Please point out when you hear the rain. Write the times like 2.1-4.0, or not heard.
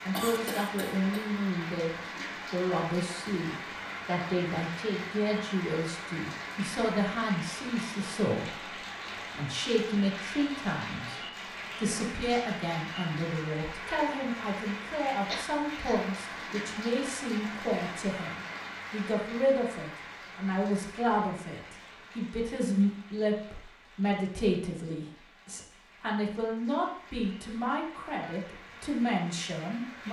0.0-30.0.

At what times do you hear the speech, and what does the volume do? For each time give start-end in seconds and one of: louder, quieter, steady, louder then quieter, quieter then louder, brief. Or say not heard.
0.1-30.0 steady.